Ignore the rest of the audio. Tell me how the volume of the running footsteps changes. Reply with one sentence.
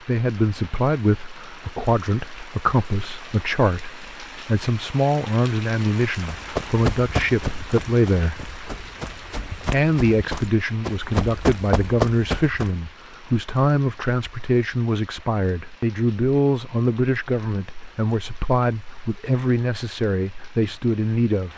The volume of the running footsteps goes down, then up.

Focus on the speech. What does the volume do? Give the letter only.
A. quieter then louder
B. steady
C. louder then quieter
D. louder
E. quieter
B.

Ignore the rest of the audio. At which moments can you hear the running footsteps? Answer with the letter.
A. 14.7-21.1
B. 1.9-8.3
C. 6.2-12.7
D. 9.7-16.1
C.